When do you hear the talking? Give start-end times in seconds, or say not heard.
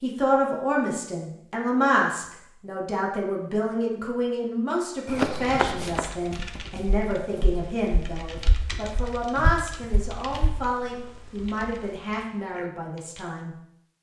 0.0-13.6.